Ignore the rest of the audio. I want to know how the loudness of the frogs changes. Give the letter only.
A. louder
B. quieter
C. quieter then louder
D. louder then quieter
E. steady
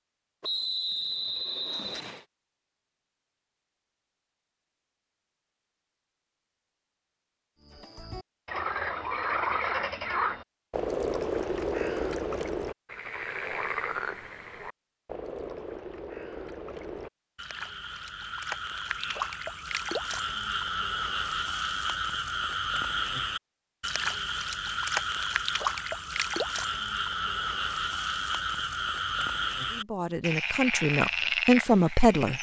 C.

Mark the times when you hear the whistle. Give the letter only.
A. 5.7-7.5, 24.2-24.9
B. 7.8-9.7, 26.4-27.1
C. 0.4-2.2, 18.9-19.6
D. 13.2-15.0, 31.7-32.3
C.